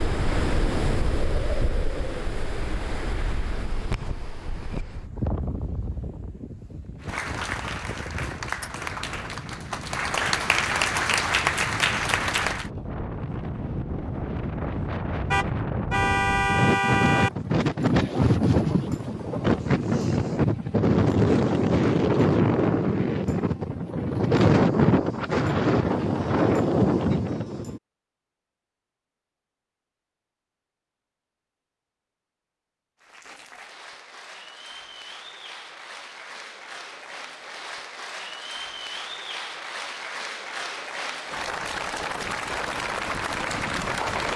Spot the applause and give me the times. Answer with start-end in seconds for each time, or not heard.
7.0-12.7, 33.0-44.3.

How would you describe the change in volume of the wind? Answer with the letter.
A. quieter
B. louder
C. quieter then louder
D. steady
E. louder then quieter
C.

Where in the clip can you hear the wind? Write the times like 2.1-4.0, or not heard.
0.0-27.8.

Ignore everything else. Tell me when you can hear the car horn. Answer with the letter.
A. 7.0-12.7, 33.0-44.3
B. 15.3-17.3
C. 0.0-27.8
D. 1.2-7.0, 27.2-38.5
B.